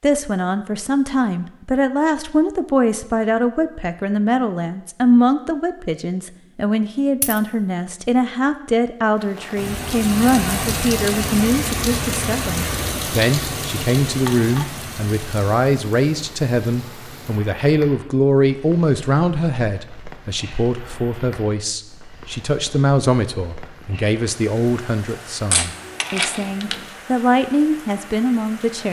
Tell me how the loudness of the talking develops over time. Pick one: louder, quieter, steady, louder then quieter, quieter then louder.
steady.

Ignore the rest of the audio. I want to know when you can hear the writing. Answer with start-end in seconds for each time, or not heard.
not heard.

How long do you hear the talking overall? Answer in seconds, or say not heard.
29 s.